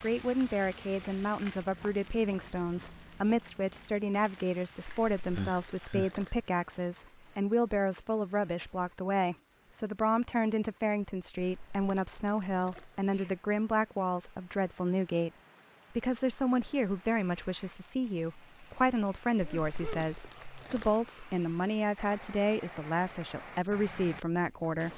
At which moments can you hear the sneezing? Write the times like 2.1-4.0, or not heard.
5.3-6.1, 12.8-13.3, 19.4-20.1.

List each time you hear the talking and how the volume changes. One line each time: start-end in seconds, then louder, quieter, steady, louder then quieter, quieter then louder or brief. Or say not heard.
0.0-15.3 steady
15.9-24.9 steady.